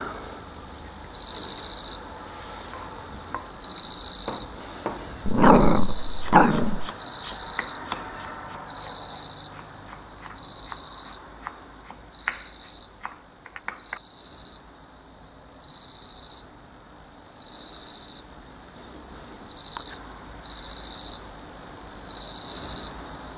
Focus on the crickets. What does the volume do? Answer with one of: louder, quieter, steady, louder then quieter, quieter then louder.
quieter then louder.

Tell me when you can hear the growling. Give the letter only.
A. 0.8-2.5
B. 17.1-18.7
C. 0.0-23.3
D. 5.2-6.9
D.